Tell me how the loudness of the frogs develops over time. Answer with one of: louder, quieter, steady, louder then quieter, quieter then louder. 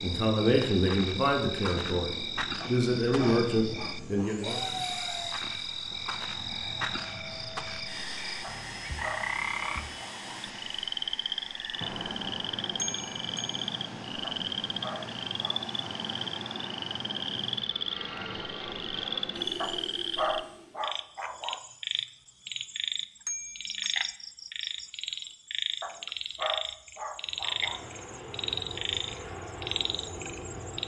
steady.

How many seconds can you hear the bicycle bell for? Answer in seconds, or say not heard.
2 s.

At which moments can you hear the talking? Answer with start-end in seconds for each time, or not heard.
0.0-4.6.